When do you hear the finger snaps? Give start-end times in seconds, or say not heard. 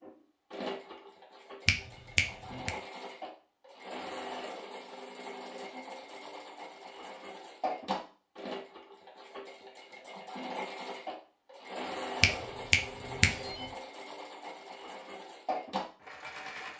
1.6-2.7, 12.2-13.7.